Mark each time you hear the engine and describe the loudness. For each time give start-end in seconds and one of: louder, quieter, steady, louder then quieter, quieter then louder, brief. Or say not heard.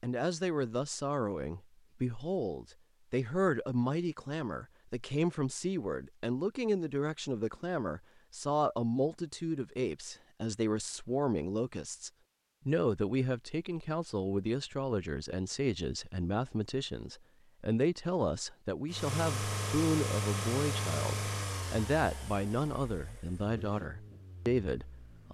18.9-25.2 quieter.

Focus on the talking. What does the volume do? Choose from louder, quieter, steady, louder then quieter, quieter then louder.
steady.